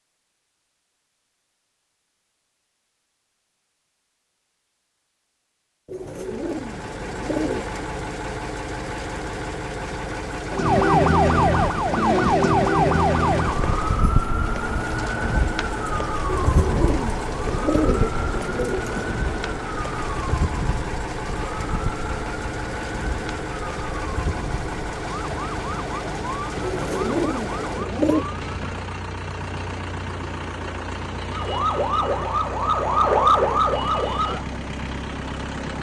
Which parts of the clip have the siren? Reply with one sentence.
You can hear the siren from 10.5 to 28.9 s and from 31.3 to 34.5 s.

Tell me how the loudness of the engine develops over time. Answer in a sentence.
The loudness of the engine stays about the same.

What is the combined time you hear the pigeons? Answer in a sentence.
You can hear the pigeons for 6 seconds altogether.